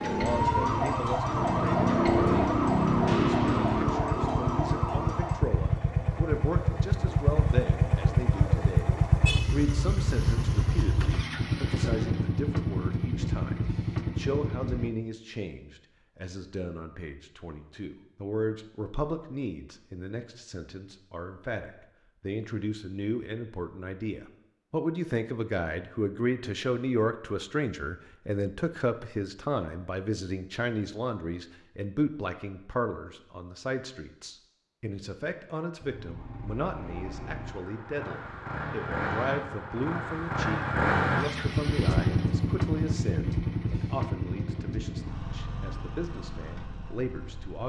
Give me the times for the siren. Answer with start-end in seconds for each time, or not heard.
0.0-5.3.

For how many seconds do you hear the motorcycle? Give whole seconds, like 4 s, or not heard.
27 s.